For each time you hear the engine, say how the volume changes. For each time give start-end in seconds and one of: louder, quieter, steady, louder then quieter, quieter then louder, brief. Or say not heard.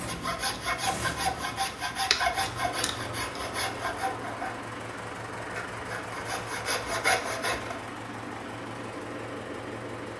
0.0-10.1 steady.